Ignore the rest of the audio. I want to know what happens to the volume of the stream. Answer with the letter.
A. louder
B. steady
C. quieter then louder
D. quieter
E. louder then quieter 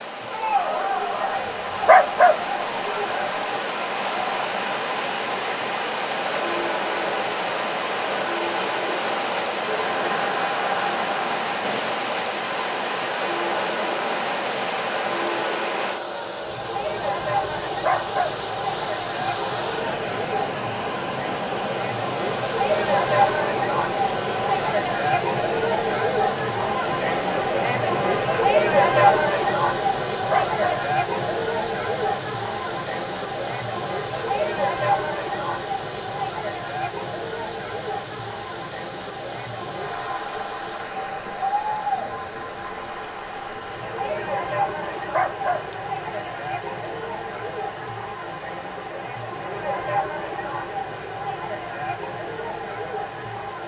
D.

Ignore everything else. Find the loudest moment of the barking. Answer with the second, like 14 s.
2 s.